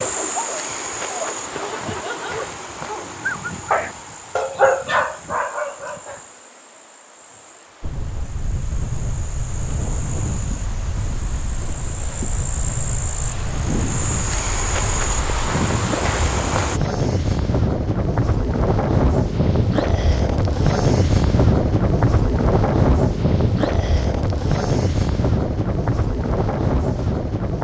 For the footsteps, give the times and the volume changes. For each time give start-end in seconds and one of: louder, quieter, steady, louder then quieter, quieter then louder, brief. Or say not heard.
not heard.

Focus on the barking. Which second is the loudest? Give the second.
5 s.